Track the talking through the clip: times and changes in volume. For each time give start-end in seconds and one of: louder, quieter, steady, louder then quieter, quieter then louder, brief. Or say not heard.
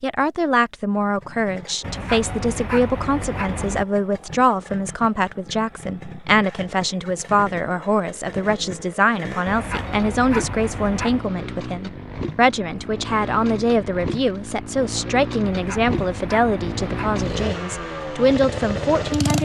0.0-19.4 steady.